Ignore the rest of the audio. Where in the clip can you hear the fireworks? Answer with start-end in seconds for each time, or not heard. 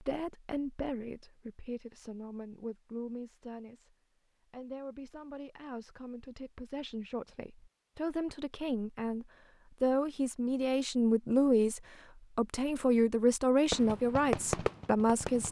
13.7-15.4.